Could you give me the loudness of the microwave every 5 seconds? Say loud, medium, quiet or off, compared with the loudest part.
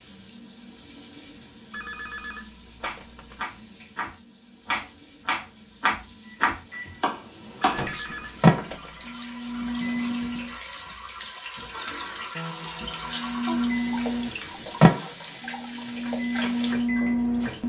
off, loud, loud, loud.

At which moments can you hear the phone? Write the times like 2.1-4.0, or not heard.
1.7-3.5, 7.7-9.1, 12.3-14.3.